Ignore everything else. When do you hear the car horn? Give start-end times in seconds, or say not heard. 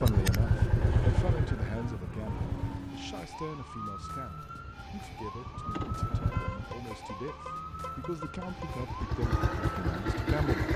1.7-3.2, 6.3-8.8.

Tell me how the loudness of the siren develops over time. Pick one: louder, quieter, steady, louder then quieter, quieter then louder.
steady.